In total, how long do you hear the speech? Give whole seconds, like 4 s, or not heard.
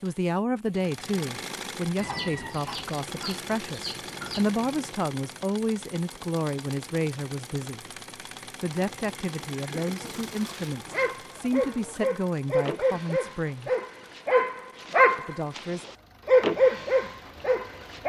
14 s.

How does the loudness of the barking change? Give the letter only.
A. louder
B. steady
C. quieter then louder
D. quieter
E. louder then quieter
A.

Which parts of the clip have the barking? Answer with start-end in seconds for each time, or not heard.
9.8-18.0.